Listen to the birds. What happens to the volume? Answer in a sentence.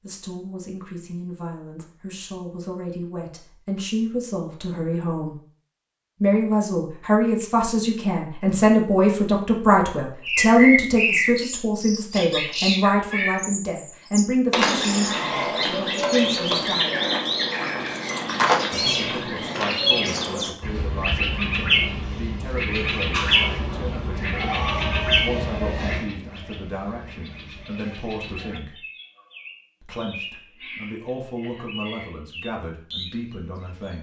The volume of the birds goes down.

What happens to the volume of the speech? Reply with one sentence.
The volume of the speech goes up, then down.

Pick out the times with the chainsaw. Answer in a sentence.
The chainsaw can't be heard in this clip.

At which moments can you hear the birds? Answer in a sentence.
The birds can be heard from 10.2 to 33.9 s.